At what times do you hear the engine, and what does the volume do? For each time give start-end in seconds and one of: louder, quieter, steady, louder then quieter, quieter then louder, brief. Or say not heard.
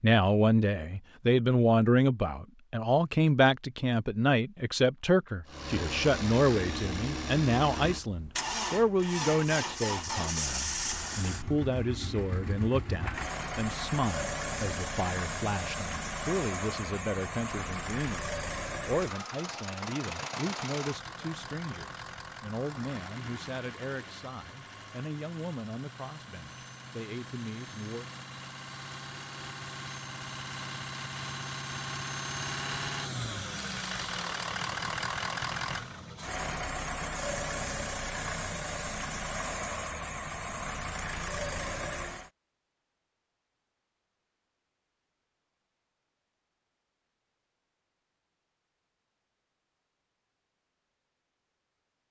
5.5-42.3 quieter then louder.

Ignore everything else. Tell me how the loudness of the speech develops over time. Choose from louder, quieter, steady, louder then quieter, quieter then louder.
quieter.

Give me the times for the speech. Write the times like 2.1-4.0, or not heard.
0.0-28.1.